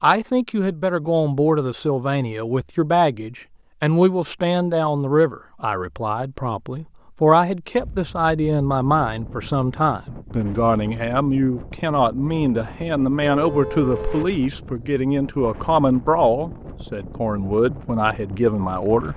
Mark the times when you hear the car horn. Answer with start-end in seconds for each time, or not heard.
13.3-14.3.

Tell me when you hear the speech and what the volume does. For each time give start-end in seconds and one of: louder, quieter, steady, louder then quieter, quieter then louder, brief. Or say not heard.
0.0-19.1 steady.